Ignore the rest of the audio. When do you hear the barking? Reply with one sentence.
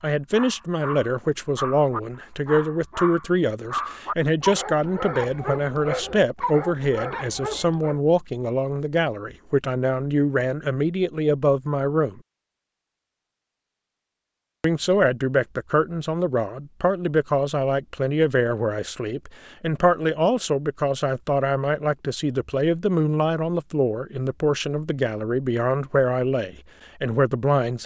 You can hear the barking from 0.3 to 8.0 s.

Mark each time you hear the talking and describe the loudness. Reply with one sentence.
You can hear the talking from 0.0 to 12.2 s, at a steady volume; and from 14.6 to 27.8 s, at a steady volume.